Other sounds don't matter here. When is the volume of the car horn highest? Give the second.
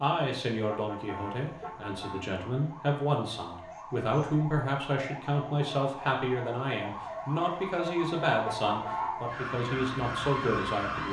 9 s.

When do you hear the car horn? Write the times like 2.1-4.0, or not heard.
0.7-2.3, 8.4-9.2.